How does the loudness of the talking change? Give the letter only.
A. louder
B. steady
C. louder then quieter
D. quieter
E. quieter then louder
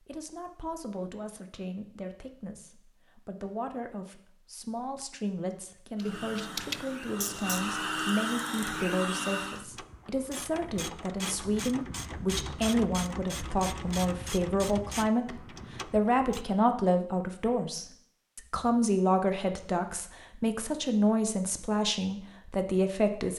A.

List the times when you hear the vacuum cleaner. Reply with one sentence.
The vacuum cleaner can be heard from 6.0 to 9.7 s.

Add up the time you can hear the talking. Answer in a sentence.
You can hear the talking for 23 seconds altogether.